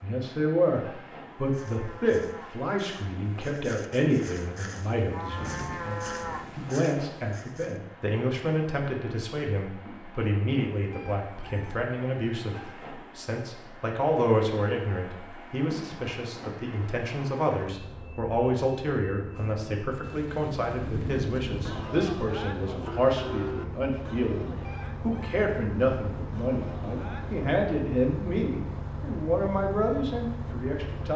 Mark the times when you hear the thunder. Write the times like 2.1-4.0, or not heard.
5.3-6.8, 20.0-21.9.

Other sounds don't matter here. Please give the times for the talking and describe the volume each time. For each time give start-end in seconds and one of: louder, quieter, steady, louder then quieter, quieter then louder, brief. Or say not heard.
0.0-31.1 steady.